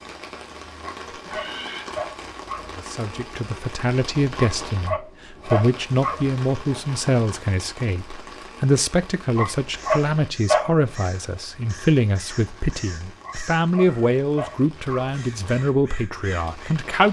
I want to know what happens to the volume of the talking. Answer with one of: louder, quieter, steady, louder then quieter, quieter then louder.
steady.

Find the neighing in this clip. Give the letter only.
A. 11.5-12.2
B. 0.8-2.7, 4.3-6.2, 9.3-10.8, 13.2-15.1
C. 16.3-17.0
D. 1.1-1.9
D.